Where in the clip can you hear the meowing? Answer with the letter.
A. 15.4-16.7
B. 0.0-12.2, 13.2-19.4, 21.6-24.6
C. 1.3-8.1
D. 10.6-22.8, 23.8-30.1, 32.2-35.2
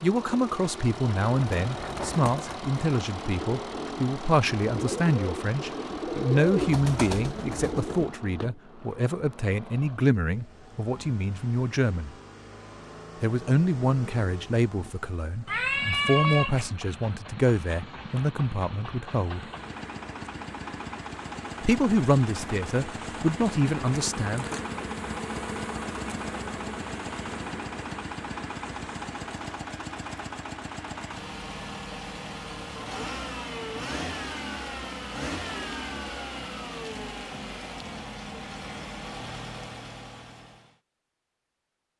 A.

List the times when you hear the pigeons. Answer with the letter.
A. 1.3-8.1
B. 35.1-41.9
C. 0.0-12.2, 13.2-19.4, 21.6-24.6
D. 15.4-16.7
A.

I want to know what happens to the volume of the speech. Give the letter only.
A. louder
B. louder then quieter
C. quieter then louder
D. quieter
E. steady
E.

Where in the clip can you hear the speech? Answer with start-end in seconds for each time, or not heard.
0.0-12.2, 13.2-19.4, 21.6-24.6.